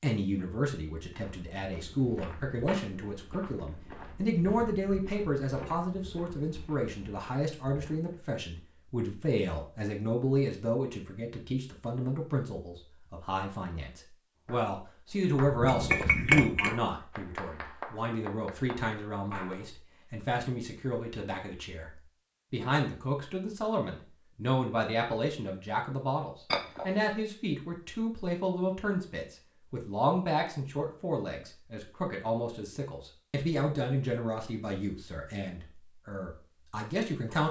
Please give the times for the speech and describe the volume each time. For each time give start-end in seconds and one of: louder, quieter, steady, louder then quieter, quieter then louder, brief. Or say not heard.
0.0-37.4 steady.